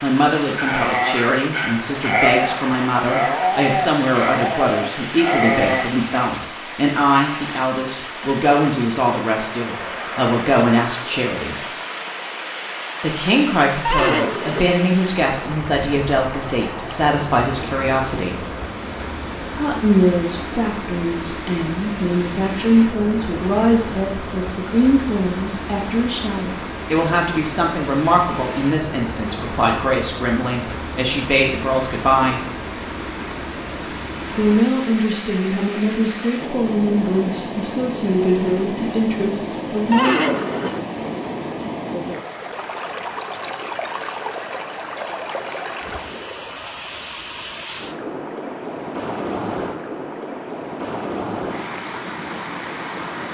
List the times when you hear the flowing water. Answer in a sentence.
You can hear the flowing water from 0.0 to 53.2 s.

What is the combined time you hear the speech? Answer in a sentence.
The speech can be heard for 36 seconds in total.